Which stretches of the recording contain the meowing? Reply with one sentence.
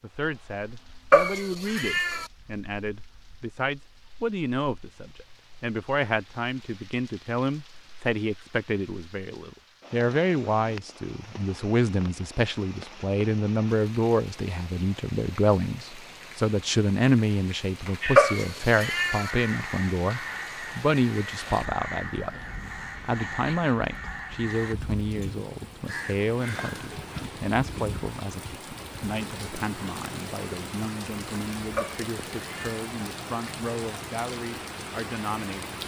The meowing can be heard from 1.1 to 2.2 s, from 18.1 to 19.3 s and from 31.8 to 32.9 s.